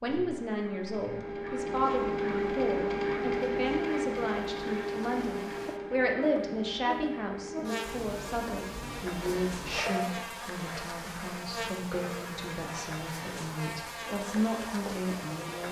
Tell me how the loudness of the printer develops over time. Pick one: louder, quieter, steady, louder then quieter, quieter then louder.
quieter.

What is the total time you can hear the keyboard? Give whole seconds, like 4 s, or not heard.
not heard.